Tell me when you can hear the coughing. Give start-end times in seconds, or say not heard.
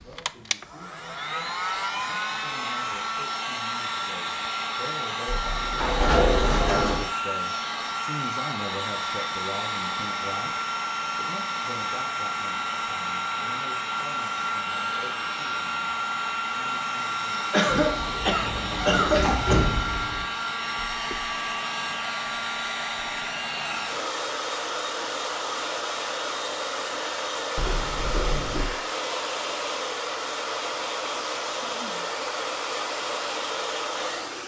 17.5-19.6.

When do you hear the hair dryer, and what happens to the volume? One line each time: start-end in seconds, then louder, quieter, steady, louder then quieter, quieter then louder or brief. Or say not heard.
0.0-34.4 steady.